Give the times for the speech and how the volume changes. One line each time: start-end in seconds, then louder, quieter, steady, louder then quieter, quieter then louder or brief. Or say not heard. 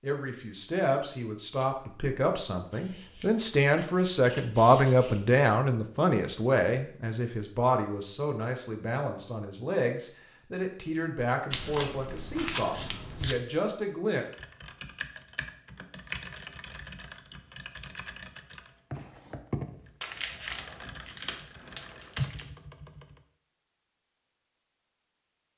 0.0-14.2 louder then quieter.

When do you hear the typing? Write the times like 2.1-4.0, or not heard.
14.2-23.2.